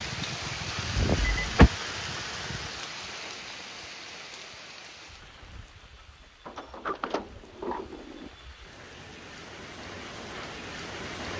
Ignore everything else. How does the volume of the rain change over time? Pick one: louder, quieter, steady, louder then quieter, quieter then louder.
quieter then louder.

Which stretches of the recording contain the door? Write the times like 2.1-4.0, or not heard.
0.9-1.7, 6.5-8.3.